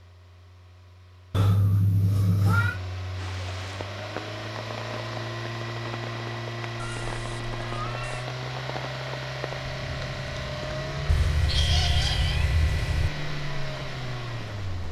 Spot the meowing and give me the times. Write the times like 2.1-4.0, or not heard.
1.3-2.8, 6.8-8.2, 11.1-13.1.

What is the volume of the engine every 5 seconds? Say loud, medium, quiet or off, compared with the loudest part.
medium, loud, loud.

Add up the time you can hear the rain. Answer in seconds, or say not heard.
12 s.